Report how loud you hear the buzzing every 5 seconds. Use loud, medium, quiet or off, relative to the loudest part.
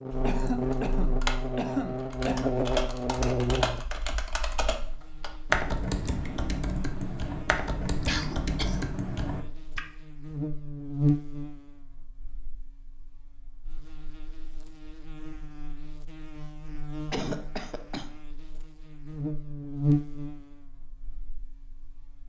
loud, quiet, loud, loud, quiet.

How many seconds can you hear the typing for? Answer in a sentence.
You can hear the typing for 10 seconds altogether.